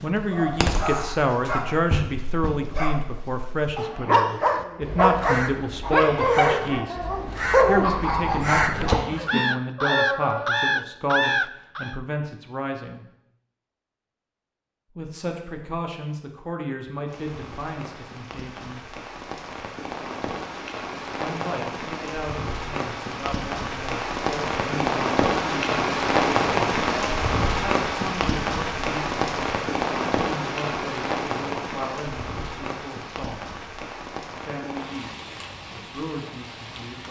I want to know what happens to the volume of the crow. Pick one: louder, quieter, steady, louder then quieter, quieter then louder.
louder.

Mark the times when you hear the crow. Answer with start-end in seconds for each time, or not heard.
4.4-12.0.